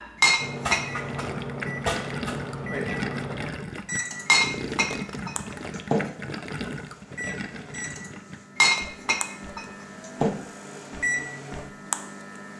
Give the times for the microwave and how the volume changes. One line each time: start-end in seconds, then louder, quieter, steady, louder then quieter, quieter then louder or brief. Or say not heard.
0.0-12.5 quieter then louder.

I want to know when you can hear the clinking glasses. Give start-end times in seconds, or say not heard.
0.2-1.2, 4.2-6.1, 8.6-10.3.